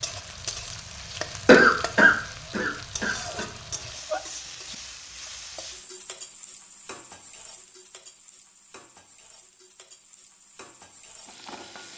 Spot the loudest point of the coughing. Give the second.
2 s.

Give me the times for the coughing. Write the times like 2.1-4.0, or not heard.
1.4-3.5.